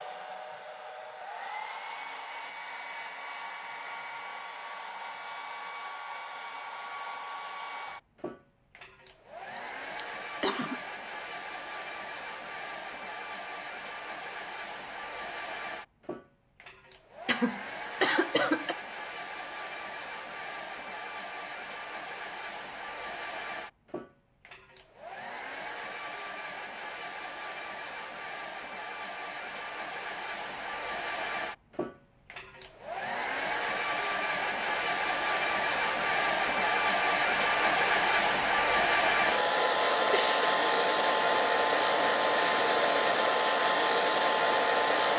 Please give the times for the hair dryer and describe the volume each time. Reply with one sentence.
You can hear the hair dryer from 0.0 to 45.1 s, getting louder.